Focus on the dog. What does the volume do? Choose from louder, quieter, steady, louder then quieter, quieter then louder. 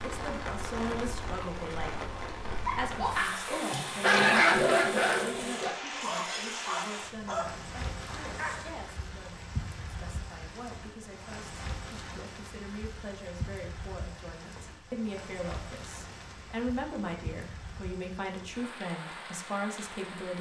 louder then quieter.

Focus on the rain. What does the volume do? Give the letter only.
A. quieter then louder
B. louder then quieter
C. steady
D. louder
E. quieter
E.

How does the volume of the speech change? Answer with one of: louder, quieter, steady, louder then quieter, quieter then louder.
quieter then louder.